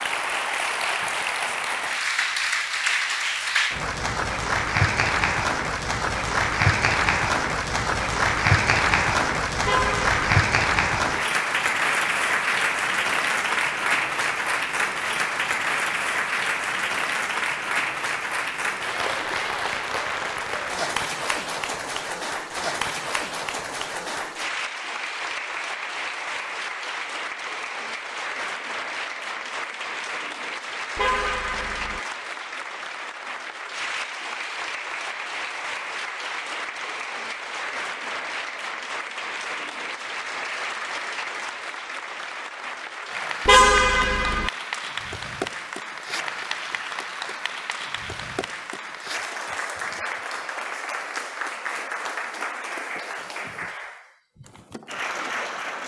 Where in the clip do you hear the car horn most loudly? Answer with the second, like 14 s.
44 s.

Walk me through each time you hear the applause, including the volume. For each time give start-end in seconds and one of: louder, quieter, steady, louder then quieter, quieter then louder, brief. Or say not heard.
0.0-55.8 quieter.